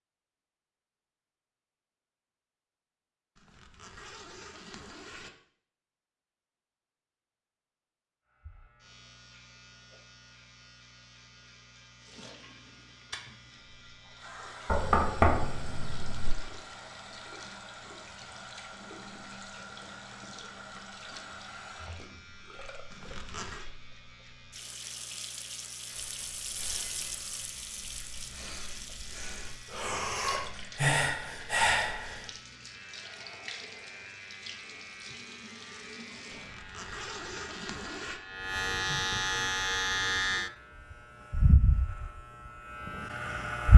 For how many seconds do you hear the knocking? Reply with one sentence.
You can hear the knocking for 2 seconds altogether.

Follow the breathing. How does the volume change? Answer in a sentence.
The loudness of the breathing goes up.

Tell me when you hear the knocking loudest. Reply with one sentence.
The volume of the knocking peaks at 15 seconds.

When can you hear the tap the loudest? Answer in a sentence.
The loudest moment of the tap is at 27 seconds.